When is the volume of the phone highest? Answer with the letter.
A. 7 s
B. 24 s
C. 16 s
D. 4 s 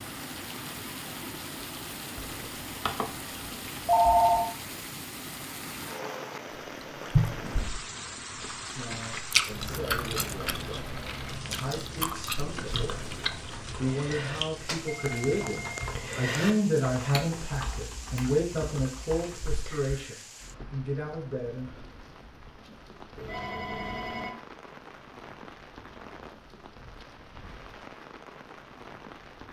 D.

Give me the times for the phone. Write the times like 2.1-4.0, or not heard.
2.1-3.0, 3.9-4.5, 14.7-15.9, 23.1-24.4.